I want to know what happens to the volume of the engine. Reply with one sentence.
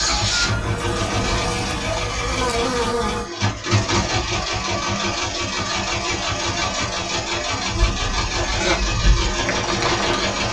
The loudness of the engine stays about the same.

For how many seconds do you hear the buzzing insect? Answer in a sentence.
The buzzing insect can be heard for 6 seconds in total.